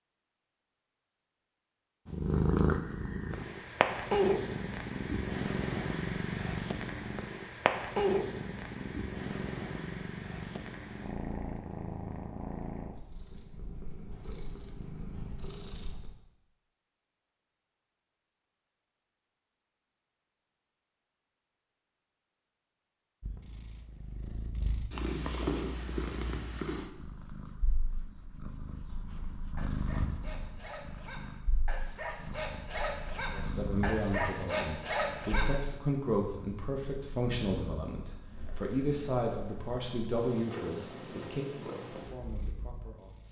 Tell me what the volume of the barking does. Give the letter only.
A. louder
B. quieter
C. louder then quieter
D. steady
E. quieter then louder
A.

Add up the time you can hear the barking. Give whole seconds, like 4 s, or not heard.
6 s.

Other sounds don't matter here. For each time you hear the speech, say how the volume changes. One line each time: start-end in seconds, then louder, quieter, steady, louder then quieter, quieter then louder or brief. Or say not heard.
33.3-43.2 quieter.